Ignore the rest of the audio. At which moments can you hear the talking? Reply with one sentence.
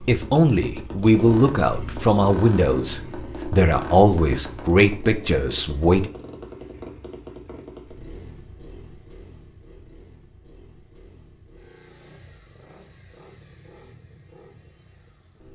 The talking can be heard from 0.0 to 6.1 s.